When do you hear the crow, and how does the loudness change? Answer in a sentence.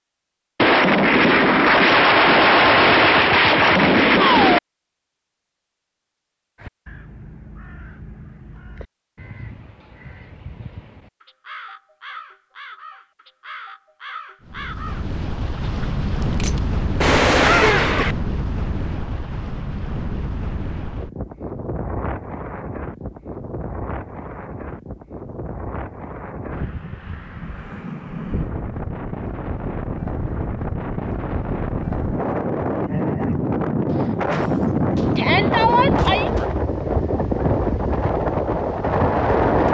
The crow can be heard from 6.5 to 15.9 s, getting louder.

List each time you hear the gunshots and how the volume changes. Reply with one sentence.
The gunshots can be heard from 0.6 to 4.6 s, at a steady volume; briefly from 16.4 to 18.1 s; and briefly from 33.9 to 36.6 s.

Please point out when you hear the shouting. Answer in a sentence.
The shouting can be heard from 35.1 to 36.3 s.